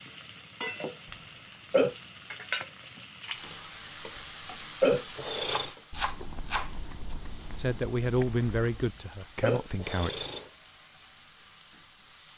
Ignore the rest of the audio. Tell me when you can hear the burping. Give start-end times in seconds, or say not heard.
1.5-1.9, 4.8-5.7, 9.2-10.5.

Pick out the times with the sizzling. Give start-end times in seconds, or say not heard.
0.0-12.3.